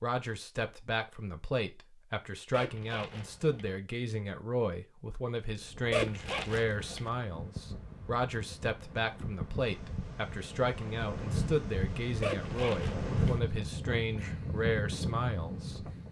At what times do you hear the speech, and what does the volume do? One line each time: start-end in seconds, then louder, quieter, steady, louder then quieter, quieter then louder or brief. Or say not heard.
0.0-15.9 steady.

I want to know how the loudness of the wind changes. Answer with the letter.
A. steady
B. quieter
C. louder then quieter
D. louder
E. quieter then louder
D.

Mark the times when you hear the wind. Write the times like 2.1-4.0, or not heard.
5.5-16.0.